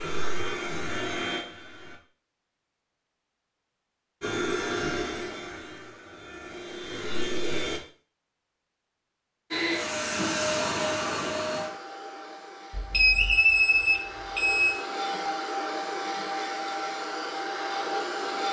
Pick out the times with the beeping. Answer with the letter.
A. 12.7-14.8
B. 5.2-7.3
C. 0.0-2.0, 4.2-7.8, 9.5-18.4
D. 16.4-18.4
A.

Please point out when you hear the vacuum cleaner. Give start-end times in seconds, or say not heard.
0.0-2.0, 4.2-7.8, 9.5-18.4.